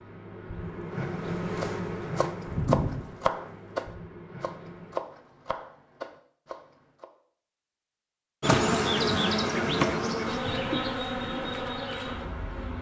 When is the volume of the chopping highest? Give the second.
3 s.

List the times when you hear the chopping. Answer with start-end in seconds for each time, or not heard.
1.6-7.1.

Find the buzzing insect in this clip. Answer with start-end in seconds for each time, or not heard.
0.0-5.0, 8.4-12.7.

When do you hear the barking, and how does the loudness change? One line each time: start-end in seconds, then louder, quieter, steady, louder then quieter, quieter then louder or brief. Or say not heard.
not heard.